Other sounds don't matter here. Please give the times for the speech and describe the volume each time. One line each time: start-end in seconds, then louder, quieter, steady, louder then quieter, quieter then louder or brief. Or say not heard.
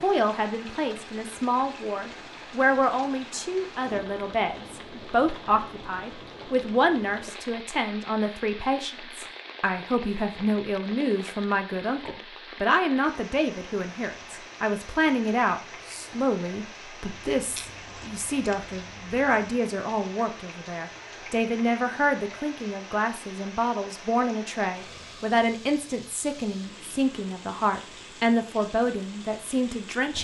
0.0-30.1 steady.